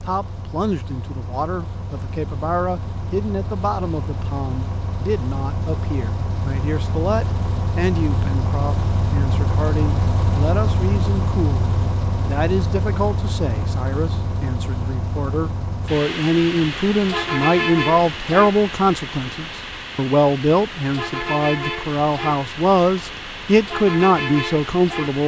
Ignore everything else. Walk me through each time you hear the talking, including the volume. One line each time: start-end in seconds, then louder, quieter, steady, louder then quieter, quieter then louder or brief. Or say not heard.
0.0-25.2 louder.